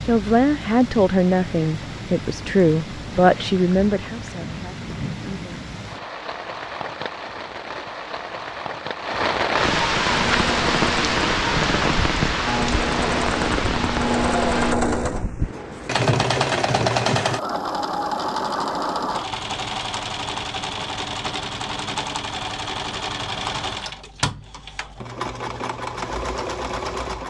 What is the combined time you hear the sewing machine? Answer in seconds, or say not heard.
17 s.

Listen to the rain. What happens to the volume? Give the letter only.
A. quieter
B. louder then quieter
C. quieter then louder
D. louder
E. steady
D.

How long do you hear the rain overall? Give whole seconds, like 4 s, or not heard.
15 s.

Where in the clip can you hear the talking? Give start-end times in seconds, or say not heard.
0.1-5.6.